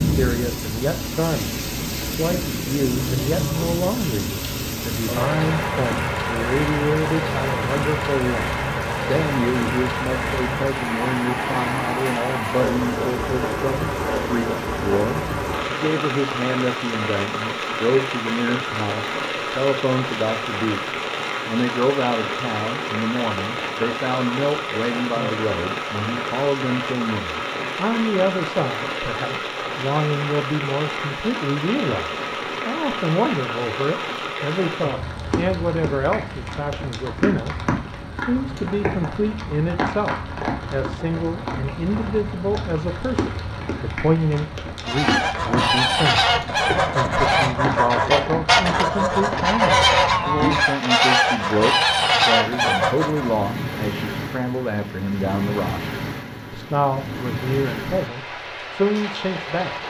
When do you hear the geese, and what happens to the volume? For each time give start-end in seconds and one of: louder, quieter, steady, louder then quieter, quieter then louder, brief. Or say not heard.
44.9-53.4 steady.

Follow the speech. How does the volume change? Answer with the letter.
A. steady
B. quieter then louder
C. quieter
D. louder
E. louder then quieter
A.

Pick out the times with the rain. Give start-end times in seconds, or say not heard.
0.0-59.8.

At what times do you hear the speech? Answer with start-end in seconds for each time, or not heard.
0.0-59.8.